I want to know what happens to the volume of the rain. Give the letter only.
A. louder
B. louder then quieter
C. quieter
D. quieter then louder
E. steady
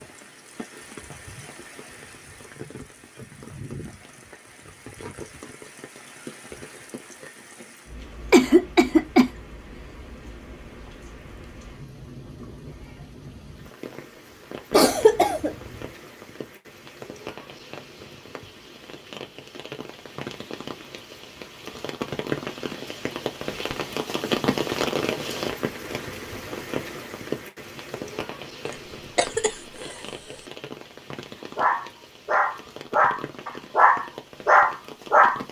B.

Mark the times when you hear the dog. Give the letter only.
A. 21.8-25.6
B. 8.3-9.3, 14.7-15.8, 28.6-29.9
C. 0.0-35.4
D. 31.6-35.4
D.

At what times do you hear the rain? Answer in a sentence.
You can hear the rain from 0.0 to 35.4 s.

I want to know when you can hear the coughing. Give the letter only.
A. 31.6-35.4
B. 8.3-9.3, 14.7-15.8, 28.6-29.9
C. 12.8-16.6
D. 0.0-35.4
B.